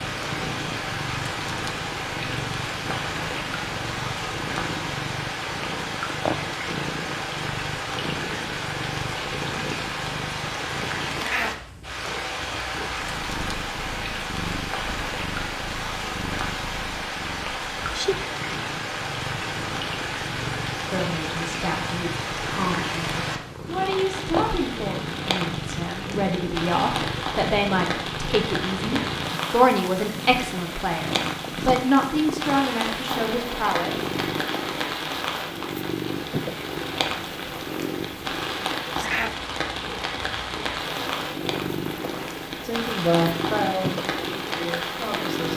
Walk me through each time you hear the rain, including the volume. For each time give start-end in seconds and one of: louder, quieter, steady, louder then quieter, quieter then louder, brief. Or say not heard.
0.0-45.5 steady.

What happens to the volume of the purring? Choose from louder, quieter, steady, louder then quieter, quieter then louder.
steady.